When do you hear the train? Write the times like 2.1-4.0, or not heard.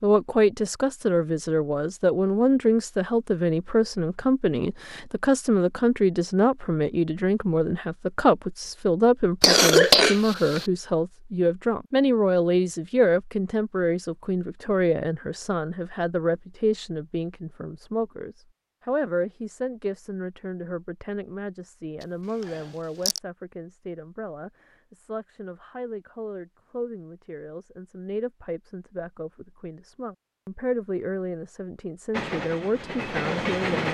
32.1-33.8.